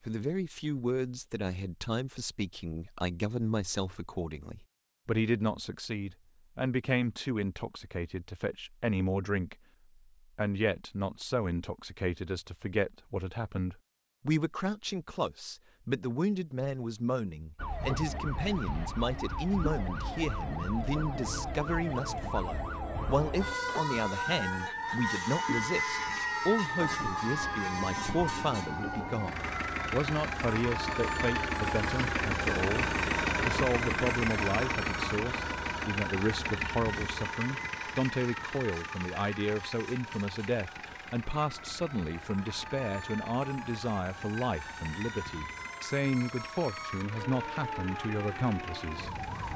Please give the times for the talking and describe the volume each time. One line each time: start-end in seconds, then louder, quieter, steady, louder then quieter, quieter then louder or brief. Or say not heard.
0.1-9.6 steady
10.3-49.2 steady.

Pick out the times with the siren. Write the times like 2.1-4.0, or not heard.
17.6-49.5.